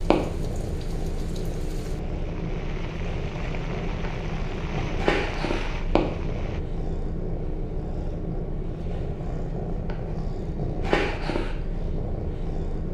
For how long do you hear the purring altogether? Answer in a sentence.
You can hear the purring for 13 seconds altogether.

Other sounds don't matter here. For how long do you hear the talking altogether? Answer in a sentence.
You can't hear the talking here.